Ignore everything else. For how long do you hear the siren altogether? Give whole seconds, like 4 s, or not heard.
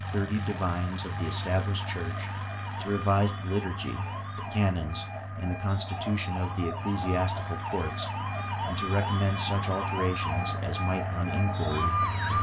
12 s.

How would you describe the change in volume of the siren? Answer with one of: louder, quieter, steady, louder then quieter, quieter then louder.
louder.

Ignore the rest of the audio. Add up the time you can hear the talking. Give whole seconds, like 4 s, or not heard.
12 s.